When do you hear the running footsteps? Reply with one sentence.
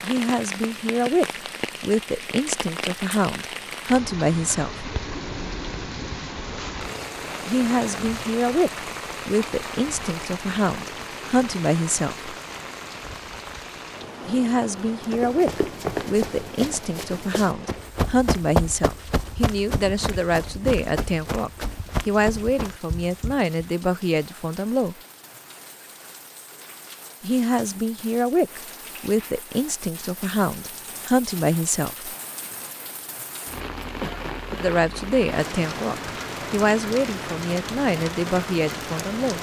The running footsteps can be heard from 15.0 to 23.4 s.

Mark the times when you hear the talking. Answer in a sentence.
The talking can be heard from 0.0 to 4.9 s, from 7.5 to 12.3 s, from 14.2 to 24.9 s, from 27.2 to 32.1 s and from 34.6 to 39.3 s.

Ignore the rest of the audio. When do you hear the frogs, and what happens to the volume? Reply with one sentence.
The frogs can't be heard in this clip.